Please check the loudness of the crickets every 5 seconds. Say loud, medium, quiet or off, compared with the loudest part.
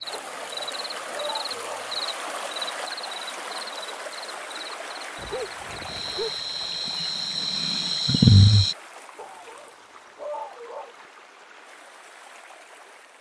quiet, loud, off.